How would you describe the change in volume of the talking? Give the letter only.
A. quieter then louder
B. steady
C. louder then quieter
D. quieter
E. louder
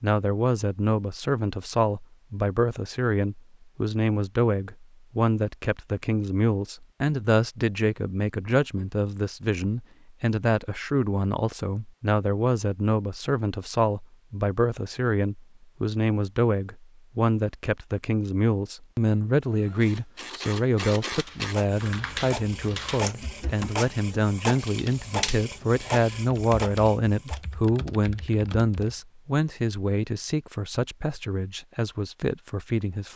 B.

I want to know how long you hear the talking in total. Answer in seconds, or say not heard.
33 s.